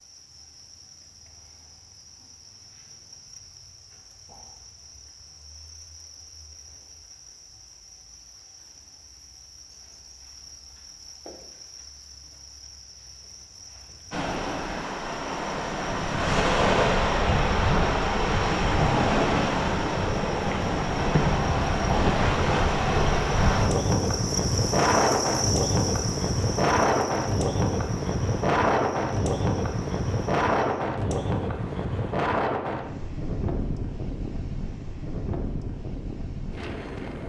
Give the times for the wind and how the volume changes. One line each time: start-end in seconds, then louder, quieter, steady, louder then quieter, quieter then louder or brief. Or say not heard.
14.1-37.2 quieter.